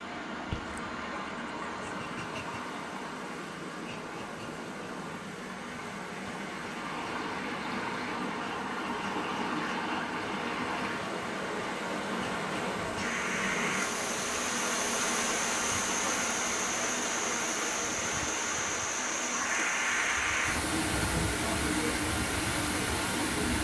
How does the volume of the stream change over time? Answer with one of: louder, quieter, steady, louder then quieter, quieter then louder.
louder.